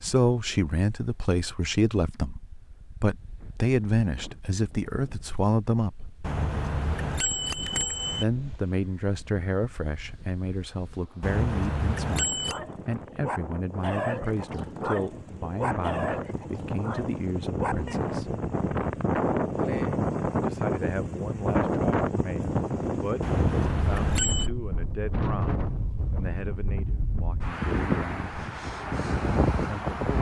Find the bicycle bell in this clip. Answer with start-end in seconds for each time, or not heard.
6.2-8.2, 11.2-12.6, 23.2-24.5.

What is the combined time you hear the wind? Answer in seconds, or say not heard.
30 s.